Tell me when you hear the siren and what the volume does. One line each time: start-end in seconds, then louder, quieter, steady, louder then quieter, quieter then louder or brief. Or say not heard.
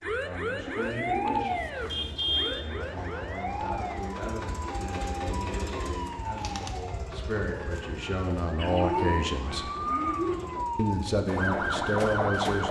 0.0-12.6 quieter then louder.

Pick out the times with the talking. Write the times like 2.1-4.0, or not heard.
0.0-9.7, 10.8-12.6.